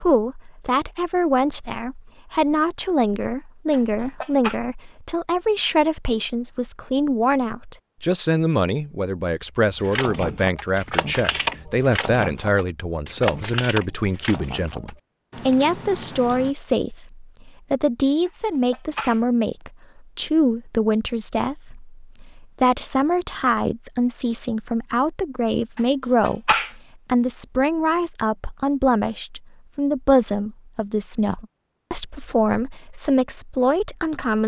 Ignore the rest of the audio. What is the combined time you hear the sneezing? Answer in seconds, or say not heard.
3 s.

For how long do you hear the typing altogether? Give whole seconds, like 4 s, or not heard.
7 s.